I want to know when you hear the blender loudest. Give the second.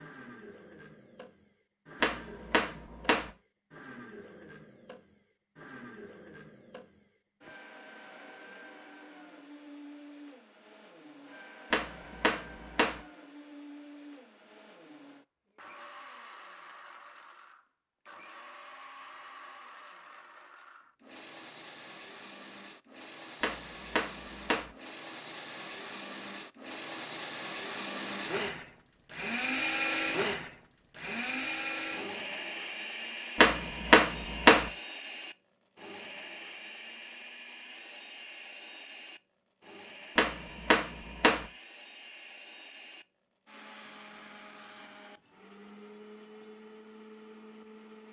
30 s.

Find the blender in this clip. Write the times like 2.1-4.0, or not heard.
0.0-48.0.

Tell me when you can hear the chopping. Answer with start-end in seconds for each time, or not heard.
2.0-3.3, 11.7-13.0, 23.4-24.7, 33.4-34.7, 40.1-41.5.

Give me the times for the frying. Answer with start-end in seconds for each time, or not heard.
not heard.